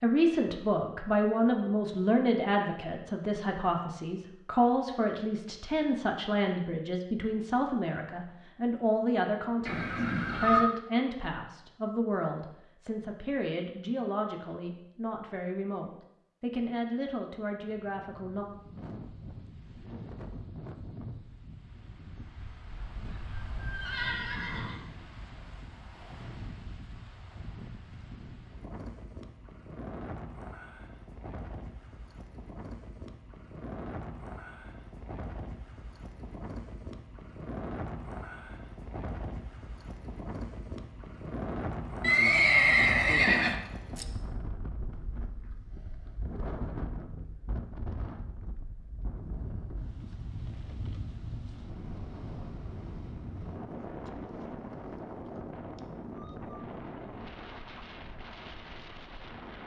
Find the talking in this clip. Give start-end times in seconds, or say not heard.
0.0-18.4.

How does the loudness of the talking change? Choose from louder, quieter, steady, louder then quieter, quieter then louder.
quieter.